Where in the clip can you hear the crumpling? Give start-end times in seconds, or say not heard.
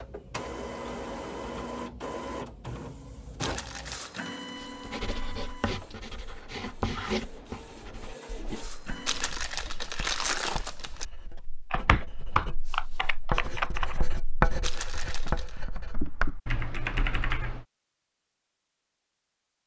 3.4-4.3, 9.1-11.1, 14.6-15.6.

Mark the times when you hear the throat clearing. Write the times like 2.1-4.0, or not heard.
not heard.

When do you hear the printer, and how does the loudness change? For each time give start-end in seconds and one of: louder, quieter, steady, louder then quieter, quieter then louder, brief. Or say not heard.
0.0-9.4 quieter then louder.